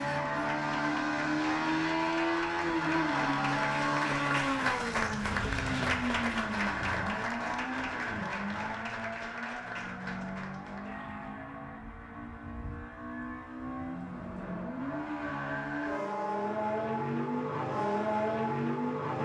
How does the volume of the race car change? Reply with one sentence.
The loudness of the race car goes down, then up.